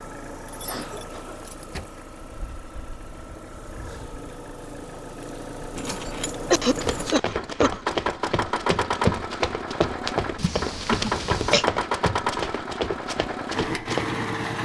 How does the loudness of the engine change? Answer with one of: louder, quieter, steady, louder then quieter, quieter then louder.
louder.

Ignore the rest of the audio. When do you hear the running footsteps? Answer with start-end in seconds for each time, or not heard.
6.7-14.2.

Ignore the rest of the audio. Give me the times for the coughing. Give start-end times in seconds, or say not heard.
0.6-1.4, 6.0-8.0, 11.0-11.7.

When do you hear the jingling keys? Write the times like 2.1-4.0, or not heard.
0.5-1.9, 5.8-7.2, 10.3-11.7.